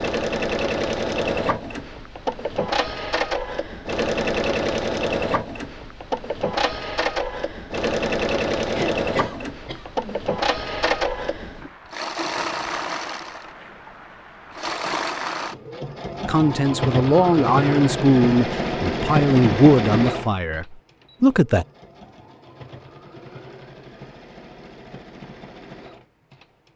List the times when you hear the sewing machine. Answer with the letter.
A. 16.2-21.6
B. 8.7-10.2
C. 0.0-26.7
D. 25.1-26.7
C.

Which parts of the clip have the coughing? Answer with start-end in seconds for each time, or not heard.
8.7-10.2.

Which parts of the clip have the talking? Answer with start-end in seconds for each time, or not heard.
16.2-21.6.